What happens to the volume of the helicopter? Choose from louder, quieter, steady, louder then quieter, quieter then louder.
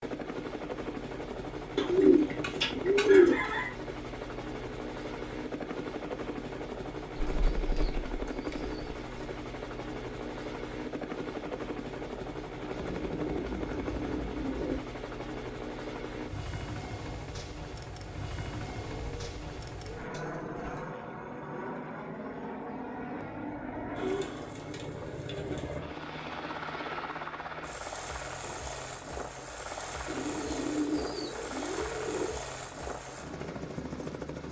steady.